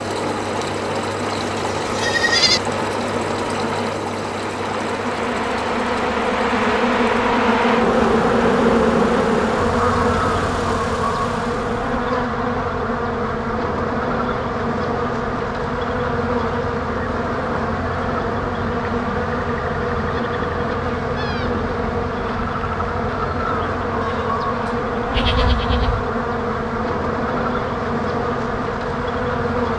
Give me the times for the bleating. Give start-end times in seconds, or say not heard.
1.4-2.6, 24.0-26.0.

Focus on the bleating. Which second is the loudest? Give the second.
2 s.